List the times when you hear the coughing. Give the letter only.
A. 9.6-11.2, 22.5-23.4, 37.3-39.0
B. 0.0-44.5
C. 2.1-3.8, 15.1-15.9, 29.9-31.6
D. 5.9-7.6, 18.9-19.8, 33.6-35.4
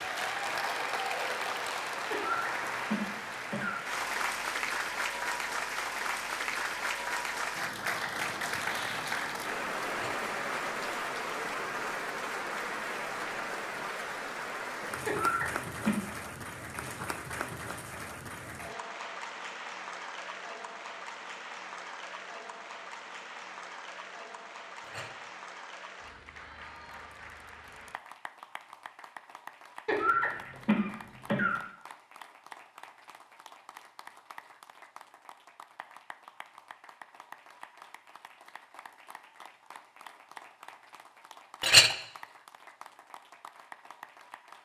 C.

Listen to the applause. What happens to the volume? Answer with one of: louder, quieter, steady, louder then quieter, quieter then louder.
quieter.